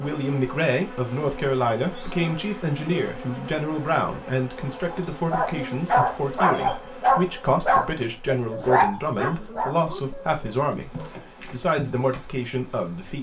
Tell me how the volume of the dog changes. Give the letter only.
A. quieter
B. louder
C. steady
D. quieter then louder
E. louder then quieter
A.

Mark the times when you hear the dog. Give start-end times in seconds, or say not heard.
4.9-11.3.